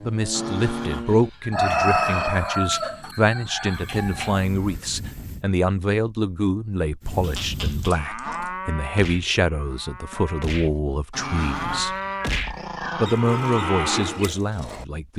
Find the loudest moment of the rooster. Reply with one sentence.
The loudest moment of the rooster is at 2 seconds.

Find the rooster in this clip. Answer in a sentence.
You can hear the rooster from 1.5 to 4.5 s.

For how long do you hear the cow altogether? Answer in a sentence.
The cow can be heard for 13 seconds in total.